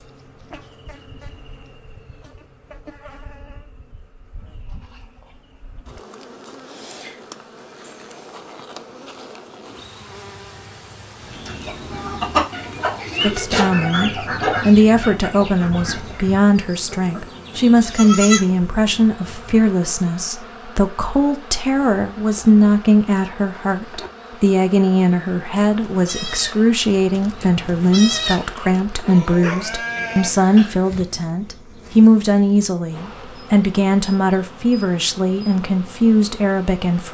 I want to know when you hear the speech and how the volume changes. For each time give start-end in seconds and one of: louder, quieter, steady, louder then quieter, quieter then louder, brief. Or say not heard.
13.2-37.0 steady.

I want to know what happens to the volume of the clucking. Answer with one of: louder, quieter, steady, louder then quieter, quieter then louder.
quieter.